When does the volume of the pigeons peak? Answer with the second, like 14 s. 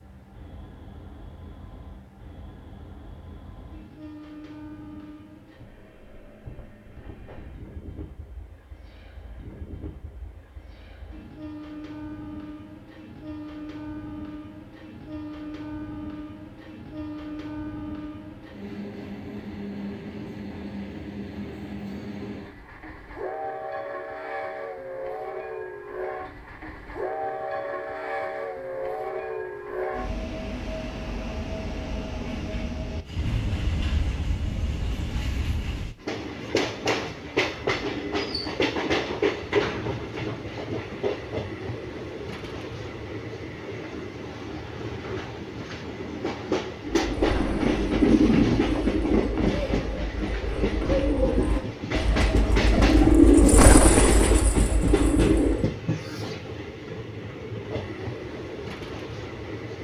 53 s.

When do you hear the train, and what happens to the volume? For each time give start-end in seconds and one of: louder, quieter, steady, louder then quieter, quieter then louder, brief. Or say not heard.
0.0-59.7 louder.